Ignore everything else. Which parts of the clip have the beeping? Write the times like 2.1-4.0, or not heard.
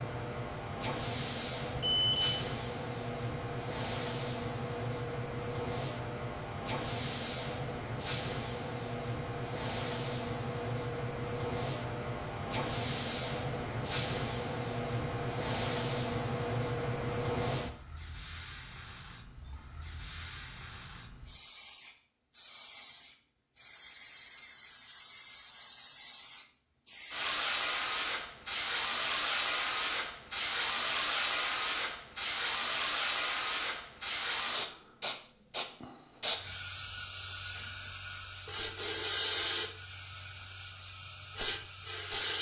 1.8-2.4.